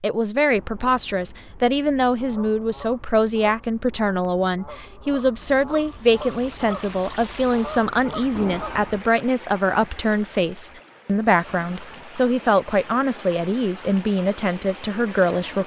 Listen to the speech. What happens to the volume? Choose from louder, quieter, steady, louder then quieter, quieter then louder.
steady.